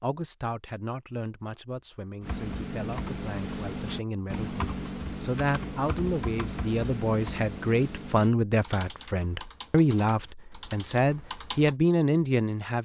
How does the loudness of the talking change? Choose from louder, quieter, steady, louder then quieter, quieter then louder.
louder.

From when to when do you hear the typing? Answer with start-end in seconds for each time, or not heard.
2.2-11.8.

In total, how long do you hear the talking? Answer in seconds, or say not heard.
13 s.